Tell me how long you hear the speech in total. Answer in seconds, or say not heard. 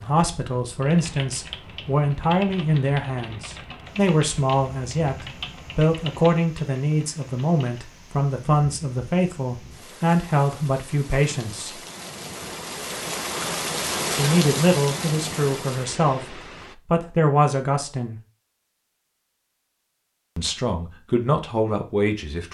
18 s.